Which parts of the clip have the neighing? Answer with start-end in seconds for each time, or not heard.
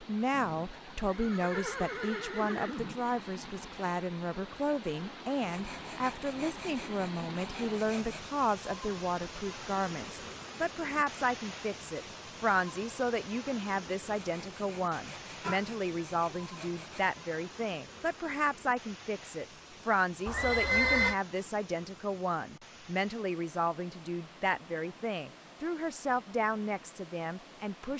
0.3-3.0, 15.4-15.8, 20.2-21.1.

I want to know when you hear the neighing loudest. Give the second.
21 s.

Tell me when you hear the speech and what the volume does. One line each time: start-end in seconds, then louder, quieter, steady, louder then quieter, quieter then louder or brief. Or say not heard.
0.0-27.9 steady.